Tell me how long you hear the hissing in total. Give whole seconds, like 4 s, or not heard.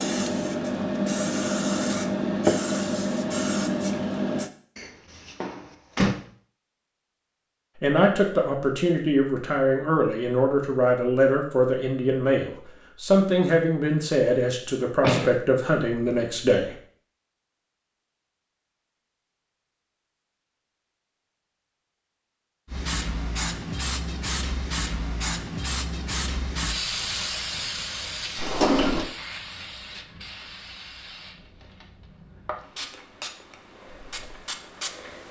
17 s.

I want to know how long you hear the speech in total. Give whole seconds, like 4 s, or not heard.
9 s.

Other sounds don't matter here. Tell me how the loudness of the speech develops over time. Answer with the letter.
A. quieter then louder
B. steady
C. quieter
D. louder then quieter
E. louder
B.